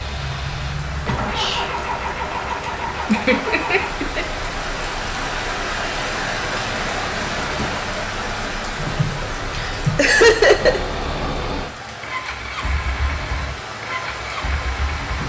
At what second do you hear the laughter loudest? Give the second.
10 s.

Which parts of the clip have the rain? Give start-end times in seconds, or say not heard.
0.0-15.2.